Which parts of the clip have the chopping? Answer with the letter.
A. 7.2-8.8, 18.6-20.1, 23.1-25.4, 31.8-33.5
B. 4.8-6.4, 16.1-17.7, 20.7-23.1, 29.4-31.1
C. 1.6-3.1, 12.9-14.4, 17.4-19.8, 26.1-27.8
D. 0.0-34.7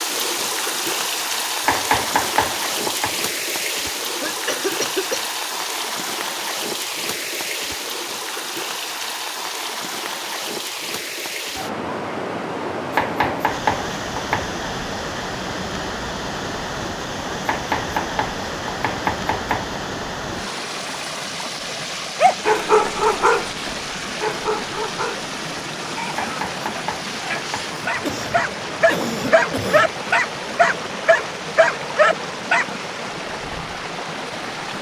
C.